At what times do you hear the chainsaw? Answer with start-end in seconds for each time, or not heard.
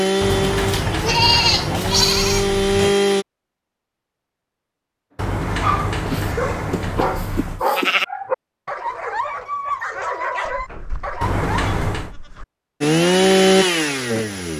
0.0-3.2, 12.8-14.5.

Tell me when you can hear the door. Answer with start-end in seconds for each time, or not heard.
0.2-3.0, 5.2-7.7, 11.2-12.2.